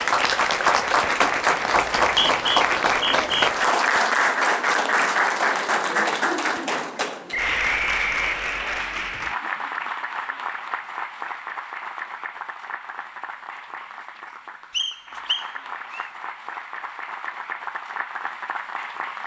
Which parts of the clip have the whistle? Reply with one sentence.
The whistle can be heard from 1.9 to 3.5 s, from 7.3 to 8.8 s and from 14.7 to 16.1 s.